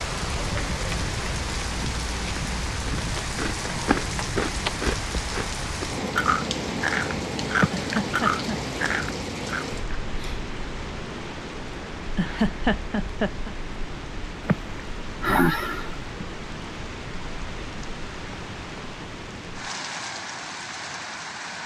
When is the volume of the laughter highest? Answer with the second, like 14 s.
13 s.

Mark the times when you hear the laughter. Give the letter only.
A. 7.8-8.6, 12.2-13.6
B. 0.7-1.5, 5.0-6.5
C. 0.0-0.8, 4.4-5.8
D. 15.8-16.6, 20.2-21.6
A.